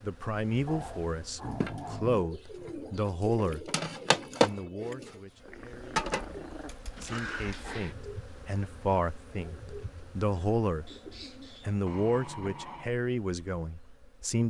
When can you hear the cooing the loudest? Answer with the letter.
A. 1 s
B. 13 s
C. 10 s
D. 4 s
D.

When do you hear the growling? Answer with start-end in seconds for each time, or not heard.
0.7-2.3, 5.5-8.0, 11.8-12.9.